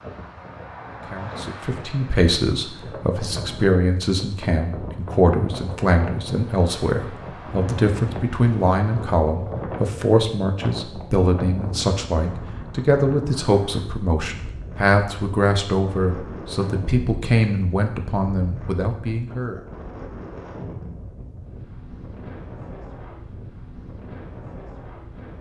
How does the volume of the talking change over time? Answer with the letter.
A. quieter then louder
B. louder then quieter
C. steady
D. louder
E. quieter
C.